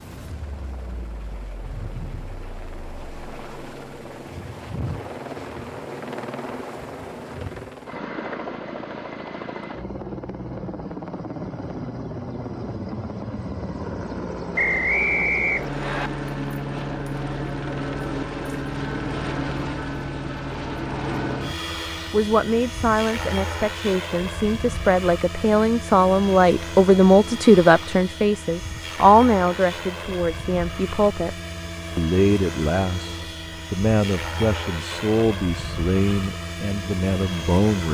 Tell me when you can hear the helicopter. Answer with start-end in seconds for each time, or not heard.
0.0-37.8.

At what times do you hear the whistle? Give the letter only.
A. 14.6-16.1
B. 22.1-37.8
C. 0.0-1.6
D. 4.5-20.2
A.